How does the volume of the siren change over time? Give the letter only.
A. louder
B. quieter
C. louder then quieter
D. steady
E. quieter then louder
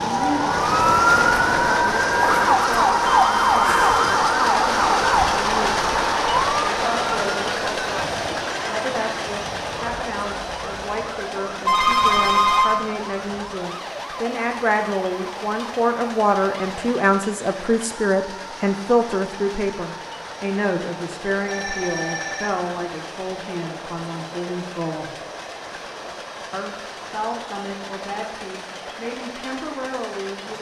B.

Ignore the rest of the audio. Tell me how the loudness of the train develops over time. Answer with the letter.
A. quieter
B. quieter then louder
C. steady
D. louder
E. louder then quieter
A.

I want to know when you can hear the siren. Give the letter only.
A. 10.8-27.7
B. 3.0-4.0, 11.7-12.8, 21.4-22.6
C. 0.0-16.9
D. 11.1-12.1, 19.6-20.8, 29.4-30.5
C.